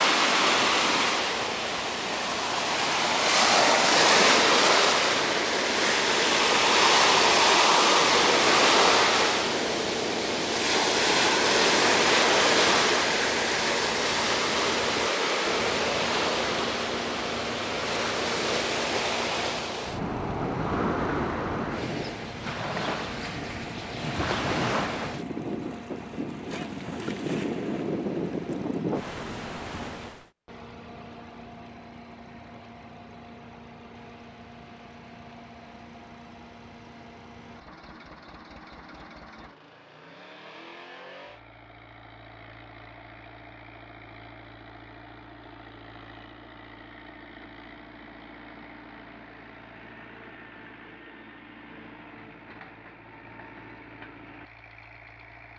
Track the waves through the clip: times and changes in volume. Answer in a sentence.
The waves can be heard from 0.0 to 30.2 s, getting quieter.